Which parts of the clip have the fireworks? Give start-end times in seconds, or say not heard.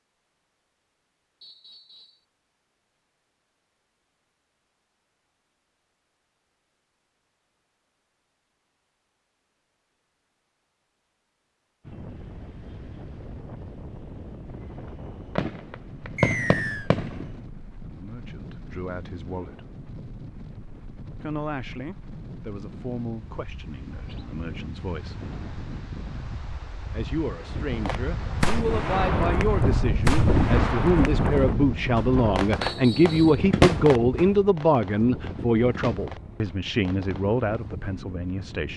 14.5-17.3, 27.8-37.4.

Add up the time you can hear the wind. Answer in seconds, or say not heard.
27 s.